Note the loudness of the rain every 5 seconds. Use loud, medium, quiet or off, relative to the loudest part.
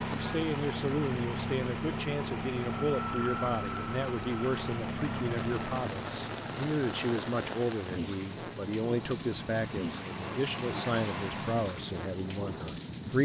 medium, loud, loud.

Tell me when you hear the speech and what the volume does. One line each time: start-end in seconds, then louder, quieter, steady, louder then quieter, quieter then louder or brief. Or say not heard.
0.0-13.2 steady.